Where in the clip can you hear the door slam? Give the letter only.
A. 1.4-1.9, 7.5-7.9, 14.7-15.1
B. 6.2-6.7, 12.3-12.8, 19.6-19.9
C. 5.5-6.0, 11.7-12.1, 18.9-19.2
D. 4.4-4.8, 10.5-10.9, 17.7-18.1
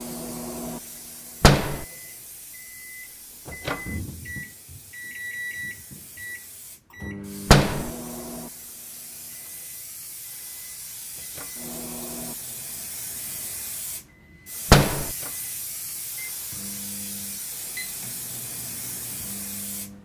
A.